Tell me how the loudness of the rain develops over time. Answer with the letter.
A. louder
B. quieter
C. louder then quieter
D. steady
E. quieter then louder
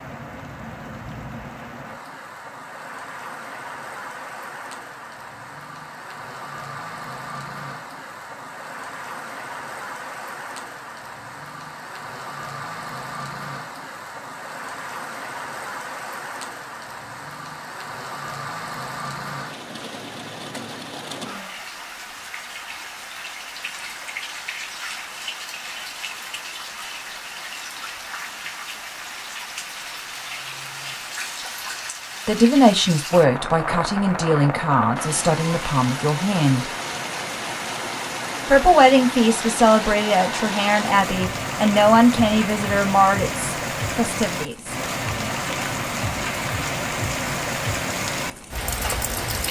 A.